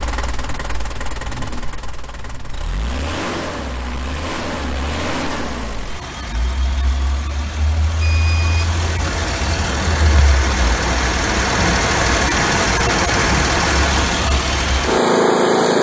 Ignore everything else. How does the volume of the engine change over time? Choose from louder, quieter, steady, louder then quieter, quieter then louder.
louder.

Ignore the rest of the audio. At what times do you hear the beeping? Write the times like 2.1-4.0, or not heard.
8.0-8.7.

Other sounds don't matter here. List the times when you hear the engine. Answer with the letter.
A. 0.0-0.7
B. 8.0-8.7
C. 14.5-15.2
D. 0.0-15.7
D.